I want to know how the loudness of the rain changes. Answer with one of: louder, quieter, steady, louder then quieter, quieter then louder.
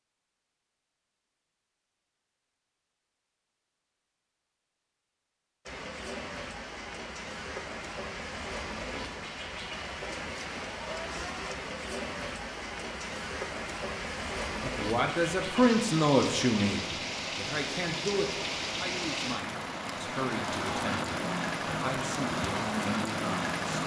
louder.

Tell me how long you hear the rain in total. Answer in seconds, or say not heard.
18 s.